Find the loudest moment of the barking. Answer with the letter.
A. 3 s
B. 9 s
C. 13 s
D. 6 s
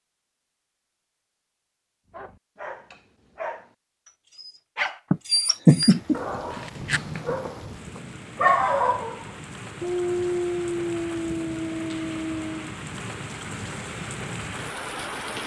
B.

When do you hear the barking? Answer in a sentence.
You can hear the barking from 2.1 to 12.8 s.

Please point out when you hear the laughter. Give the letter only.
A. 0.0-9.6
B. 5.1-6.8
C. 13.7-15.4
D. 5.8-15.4
B.